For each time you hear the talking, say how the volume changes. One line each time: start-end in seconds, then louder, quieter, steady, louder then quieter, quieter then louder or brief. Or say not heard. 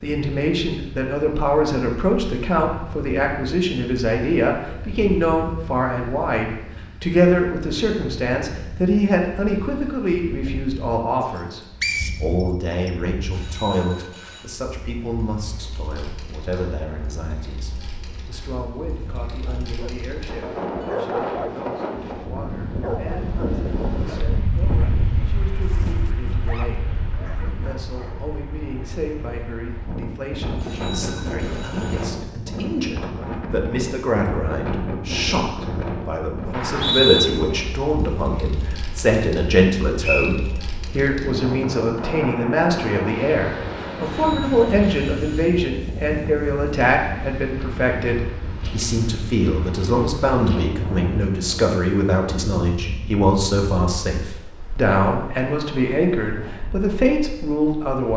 0.0-58.1 quieter then louder.